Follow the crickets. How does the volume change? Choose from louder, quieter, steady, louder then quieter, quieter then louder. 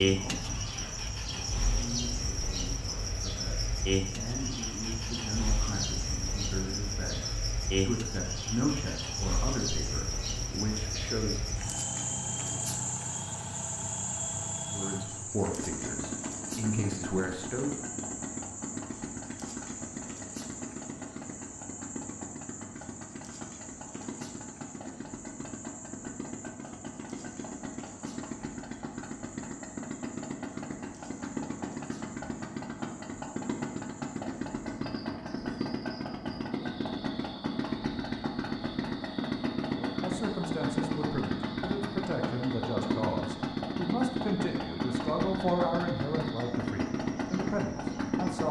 quieter.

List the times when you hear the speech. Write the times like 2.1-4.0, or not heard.
0.1-11.4, 14.7-17.8, 39.7-48.4.